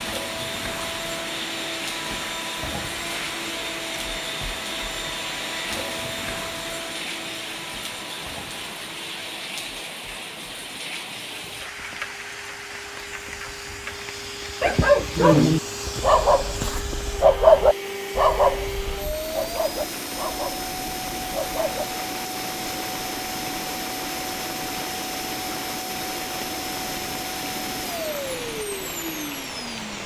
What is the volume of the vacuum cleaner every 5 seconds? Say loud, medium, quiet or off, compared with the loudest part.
loud, loud, medium, loud, loud, loud.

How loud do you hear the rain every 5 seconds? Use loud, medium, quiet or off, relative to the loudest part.
loud, loud, loud, medium, loud, loud.